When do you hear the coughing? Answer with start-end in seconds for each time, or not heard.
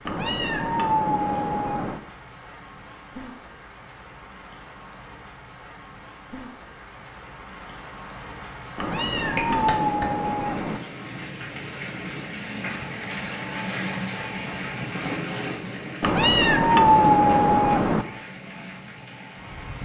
9.3-10.1.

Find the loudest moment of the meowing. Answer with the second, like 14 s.
17 s.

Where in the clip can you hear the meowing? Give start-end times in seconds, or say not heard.
0.1-2.0, 8.8-10.8, 16.0-18.1.